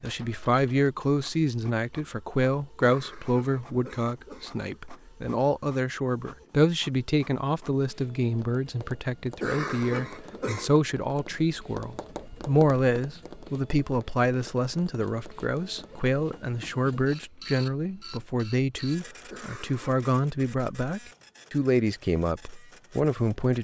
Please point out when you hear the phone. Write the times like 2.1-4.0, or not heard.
not heard.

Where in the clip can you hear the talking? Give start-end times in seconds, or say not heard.
0.0-23.5.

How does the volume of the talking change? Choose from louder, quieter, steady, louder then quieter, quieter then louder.
steady.